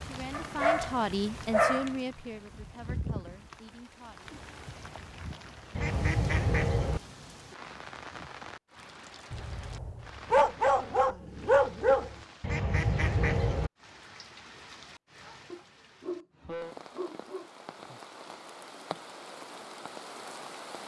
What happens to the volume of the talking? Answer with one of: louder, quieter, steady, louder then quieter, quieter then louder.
quieter.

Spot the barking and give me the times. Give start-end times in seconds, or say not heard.
0.3-1.9, 9.3-12.2, 15.5-17.5.